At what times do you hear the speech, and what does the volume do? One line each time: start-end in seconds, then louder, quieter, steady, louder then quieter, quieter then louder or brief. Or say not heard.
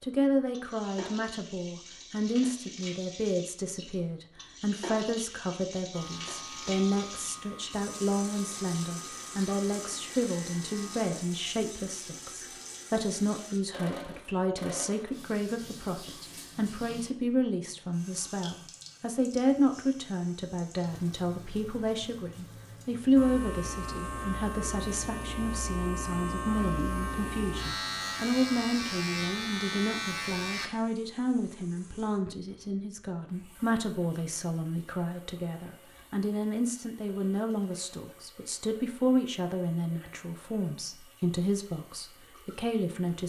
0.0-43.2 steady.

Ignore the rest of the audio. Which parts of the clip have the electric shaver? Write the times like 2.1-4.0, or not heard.
5.9-11.2, 23.1-30.7.